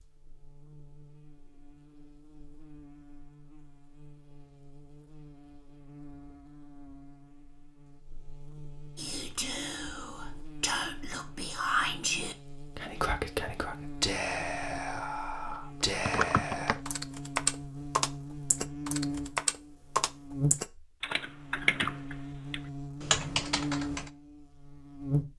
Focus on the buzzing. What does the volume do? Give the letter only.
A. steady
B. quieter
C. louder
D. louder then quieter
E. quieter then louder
C.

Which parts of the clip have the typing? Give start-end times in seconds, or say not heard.
15.9-24.1.